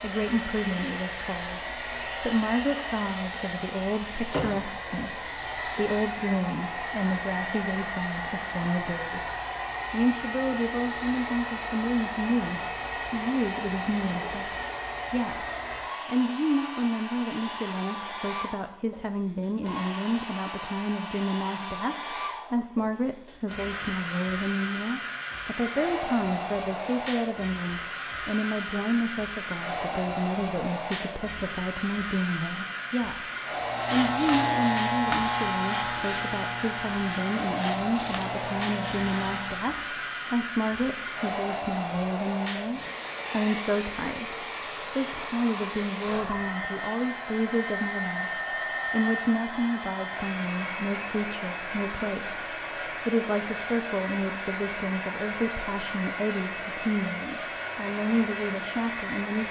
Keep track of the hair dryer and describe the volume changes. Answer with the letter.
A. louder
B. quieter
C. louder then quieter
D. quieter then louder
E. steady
E.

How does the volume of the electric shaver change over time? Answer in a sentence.
The volume of the electric shaver goes down.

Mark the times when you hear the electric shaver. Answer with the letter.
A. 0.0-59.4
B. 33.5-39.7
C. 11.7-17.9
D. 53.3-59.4
B.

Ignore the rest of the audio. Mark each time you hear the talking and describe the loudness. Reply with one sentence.
The talking can be heard from 0.0 to 59.4 s, at a steady volume.